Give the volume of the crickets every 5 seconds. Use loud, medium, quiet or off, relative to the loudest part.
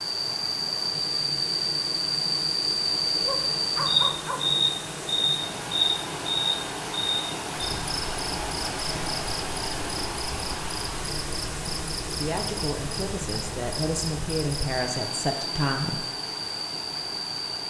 loud, medium, medium, medium.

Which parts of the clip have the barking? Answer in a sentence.
You can hear the barking from 3.2 to 4.5 s.